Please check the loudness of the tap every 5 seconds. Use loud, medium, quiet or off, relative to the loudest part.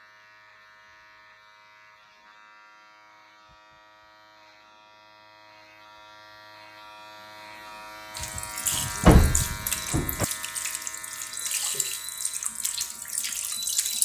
off, loud, loud.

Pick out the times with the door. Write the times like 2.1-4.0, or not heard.
8.7-10.2.